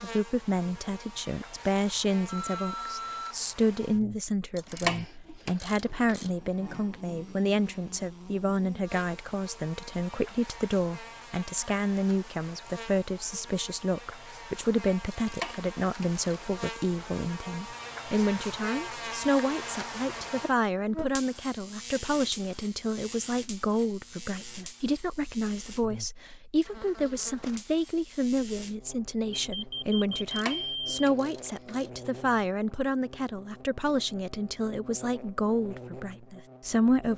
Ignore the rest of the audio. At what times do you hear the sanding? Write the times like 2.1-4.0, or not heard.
not heard.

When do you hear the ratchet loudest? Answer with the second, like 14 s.
5 s.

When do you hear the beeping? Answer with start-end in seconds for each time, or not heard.
2.2-3.4, 29.3-31.1.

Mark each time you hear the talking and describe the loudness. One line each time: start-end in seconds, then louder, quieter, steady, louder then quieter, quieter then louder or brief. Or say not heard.
0.0-37.1 steady.